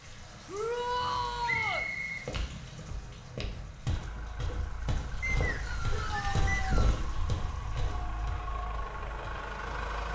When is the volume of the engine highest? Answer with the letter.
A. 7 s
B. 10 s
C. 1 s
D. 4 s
B.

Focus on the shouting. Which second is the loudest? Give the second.
1 s.